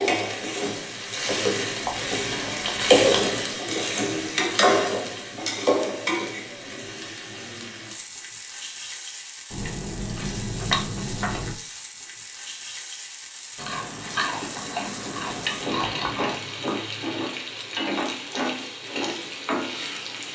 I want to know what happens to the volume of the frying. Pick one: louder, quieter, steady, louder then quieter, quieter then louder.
quieter then louder.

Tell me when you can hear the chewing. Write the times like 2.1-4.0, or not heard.
1.9-3.4, 9.5-11.6, 13.6-16.4.